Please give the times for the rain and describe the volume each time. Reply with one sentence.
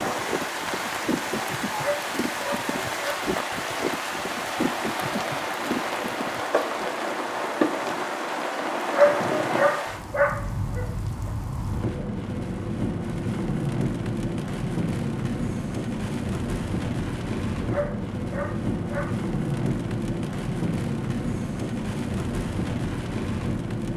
The rain can be heard from 0.0 to 23.9 s, at a steady volume.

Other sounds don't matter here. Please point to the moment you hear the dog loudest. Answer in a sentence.
The volume of the dog peaks at 9 seconds.